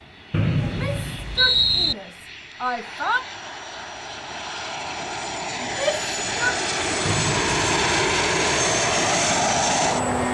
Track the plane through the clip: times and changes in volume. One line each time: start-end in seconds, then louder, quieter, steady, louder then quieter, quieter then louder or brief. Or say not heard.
0.0-10.2 louder.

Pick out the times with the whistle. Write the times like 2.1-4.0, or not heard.
0.3-1.9, 7.0-7.8.